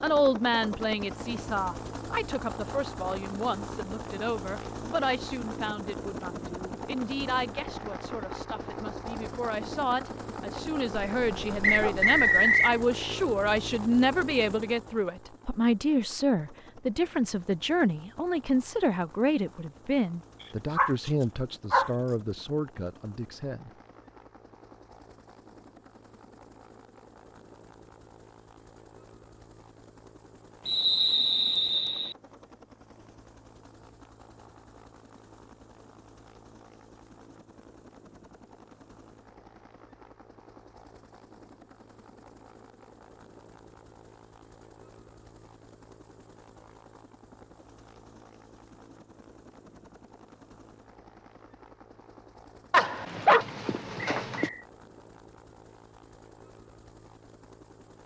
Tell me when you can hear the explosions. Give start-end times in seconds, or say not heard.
not heard.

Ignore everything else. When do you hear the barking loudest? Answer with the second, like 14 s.
53 s.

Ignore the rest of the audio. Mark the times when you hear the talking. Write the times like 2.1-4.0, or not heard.
0.0-23.7.